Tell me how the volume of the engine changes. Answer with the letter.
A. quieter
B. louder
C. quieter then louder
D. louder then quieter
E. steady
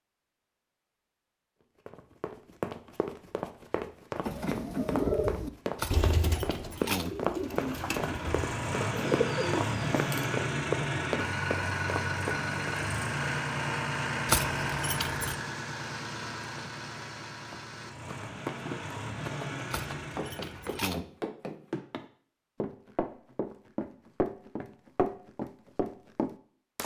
A.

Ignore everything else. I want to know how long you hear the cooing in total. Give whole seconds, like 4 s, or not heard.
6 s.